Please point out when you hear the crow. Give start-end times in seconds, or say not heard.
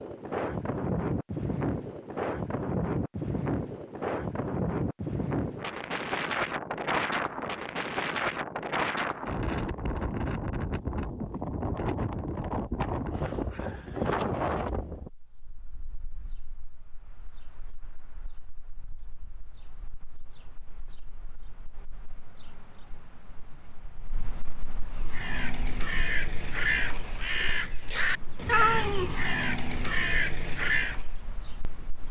24.9-31.1.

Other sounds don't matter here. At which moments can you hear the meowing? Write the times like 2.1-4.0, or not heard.
28.4-29.1.